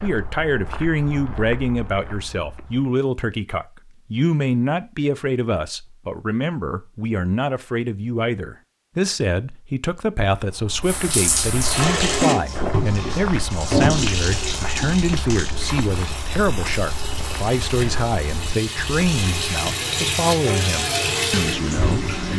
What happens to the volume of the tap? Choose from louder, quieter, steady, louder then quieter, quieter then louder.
quieter then louder.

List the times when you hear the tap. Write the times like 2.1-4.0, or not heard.
10.8-22.3.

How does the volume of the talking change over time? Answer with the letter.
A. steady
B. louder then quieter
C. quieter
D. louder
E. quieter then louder
A.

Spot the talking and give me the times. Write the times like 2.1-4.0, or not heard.
0.0-22.3.